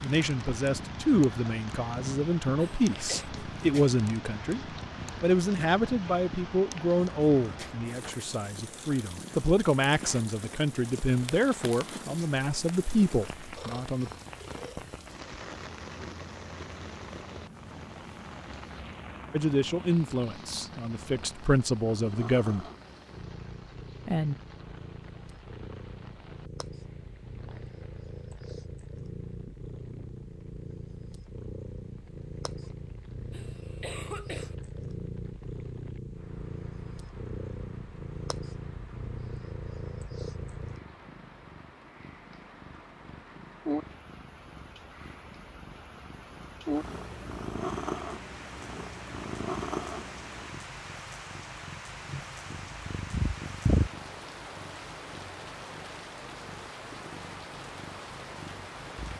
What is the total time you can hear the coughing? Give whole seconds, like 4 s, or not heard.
2 s.